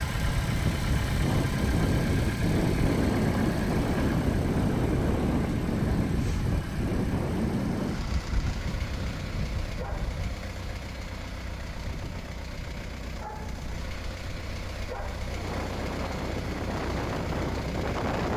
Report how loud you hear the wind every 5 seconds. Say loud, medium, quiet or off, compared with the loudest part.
loud, loud, quiet, medium.